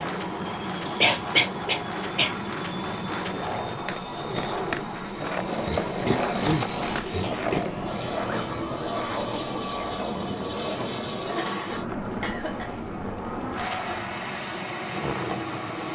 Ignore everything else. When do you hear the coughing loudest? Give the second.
1 s.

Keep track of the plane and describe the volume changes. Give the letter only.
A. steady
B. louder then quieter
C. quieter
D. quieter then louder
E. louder
A.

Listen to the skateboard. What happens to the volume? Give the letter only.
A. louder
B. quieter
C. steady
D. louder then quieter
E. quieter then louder
D.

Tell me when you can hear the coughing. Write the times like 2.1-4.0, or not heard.
0.3-2.3, 5.6-7.6, 11.2-12.7.